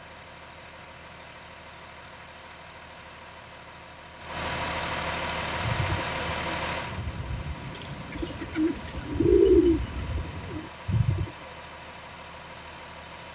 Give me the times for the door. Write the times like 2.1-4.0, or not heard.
not heard.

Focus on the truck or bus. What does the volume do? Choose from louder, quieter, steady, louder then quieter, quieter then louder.
louder then quieter.